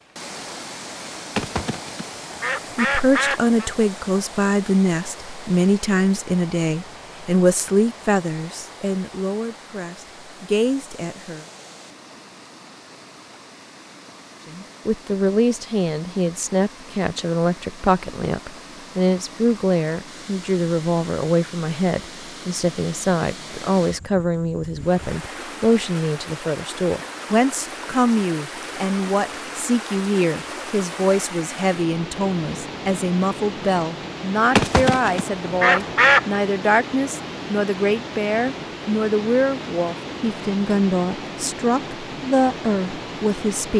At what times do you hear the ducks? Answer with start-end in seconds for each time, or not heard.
1.4-3.7, 34.5-36.4.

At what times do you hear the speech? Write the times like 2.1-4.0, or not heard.
2.8-11.4, 14.4-43.7.